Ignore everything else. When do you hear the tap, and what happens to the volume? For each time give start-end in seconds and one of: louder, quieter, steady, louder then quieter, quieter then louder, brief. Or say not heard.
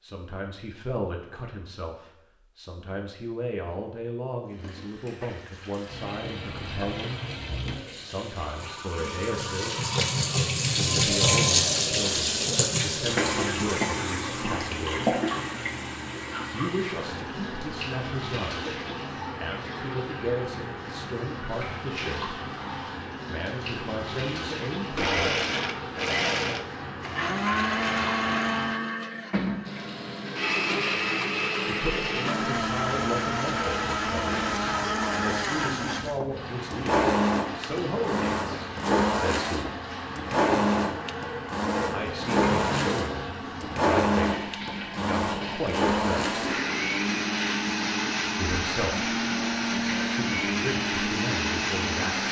4.5-52.2 quieter.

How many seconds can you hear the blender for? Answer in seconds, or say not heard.
27 s.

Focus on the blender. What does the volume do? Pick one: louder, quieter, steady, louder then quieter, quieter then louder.
steady.